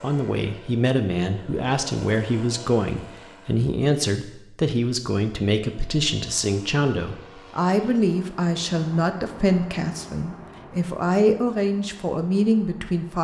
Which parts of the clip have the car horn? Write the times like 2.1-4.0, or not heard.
not heard.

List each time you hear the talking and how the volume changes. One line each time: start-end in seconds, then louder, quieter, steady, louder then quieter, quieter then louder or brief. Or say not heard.
0.0-13.2 steady.